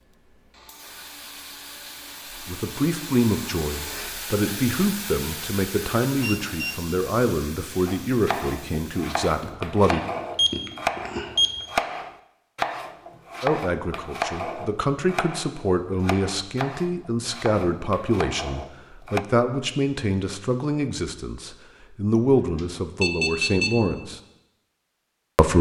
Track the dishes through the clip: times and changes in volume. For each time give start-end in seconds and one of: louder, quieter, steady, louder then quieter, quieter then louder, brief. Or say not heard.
not heard.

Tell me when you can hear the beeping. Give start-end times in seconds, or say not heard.
6.2-6.8, 9.2-11.5, 22.6-23.8.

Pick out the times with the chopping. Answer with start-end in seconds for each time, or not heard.
7.8-19.2.